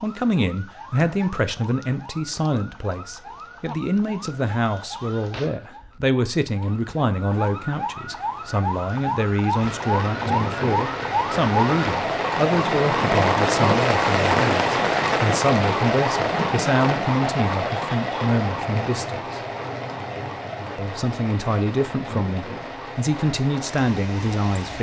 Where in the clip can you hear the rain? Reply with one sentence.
The rain can be heard from 9.6 to 24.7 s.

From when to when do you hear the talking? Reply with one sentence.
The talking can be heard from 0.0 to 19.4 s and from 20.8 to 24.7 s.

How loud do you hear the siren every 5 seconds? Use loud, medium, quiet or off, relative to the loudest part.
quiet, medium, loud, loud, quiet.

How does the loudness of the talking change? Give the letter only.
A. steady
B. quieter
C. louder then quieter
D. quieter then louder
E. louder
A.